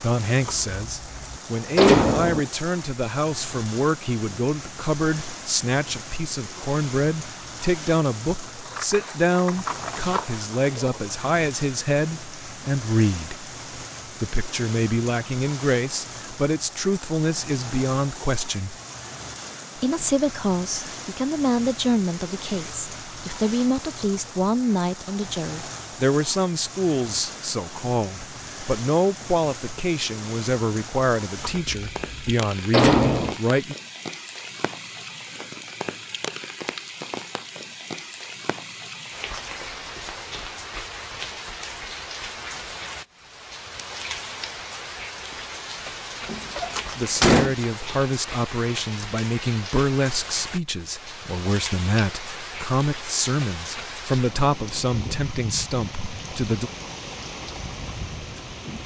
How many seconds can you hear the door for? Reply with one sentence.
The door can be heard for 5 seconds in total.